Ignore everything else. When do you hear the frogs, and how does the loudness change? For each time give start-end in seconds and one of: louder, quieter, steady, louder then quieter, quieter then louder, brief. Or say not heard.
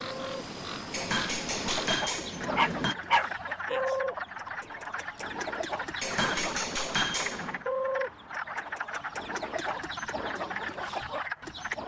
0.0-11.8 steady.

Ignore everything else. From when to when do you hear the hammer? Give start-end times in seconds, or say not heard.
0.9-3.0, 6.0-7.7.